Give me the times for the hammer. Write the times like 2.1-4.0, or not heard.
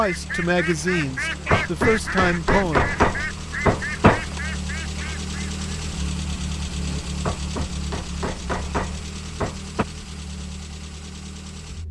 1.5-4.4, 7.2-9.8.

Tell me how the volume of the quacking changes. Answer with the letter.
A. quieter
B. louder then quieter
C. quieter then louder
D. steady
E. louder
A.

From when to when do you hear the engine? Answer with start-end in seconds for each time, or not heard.
0.0-11.8.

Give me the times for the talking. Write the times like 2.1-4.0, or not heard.
0.0-3.0.